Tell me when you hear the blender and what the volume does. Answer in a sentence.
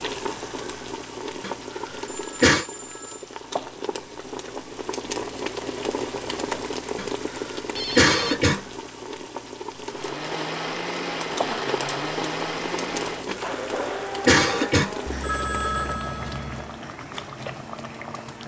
You can hear the blender from 9.8 to 18.4 s, getting quieter.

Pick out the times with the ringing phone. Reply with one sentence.
You can hear the ringing phone from 2.0 to 3.5 s, from 7.8 to 8.5 s and from 15.1 to 16.8 s.